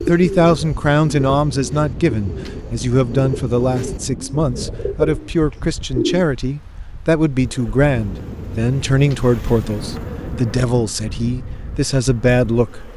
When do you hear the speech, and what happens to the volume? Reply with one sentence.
You can hear the speech from 0.0 to 12.9 s, at a steady volume.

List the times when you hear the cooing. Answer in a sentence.
The cooing can be heard from 0.0 to 6.2 s.